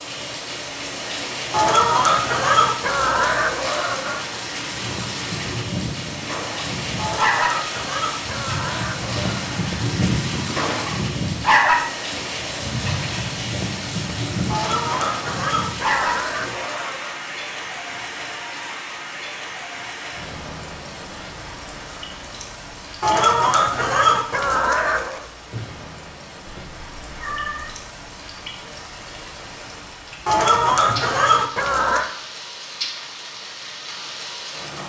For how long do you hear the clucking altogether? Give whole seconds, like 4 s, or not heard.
12 s.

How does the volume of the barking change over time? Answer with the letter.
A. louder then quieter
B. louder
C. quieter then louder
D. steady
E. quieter
A.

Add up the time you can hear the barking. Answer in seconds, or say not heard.
12 s.